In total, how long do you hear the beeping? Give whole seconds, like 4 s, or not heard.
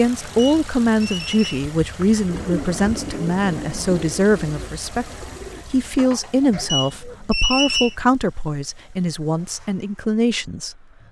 3 s.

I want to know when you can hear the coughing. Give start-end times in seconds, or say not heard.
not heard.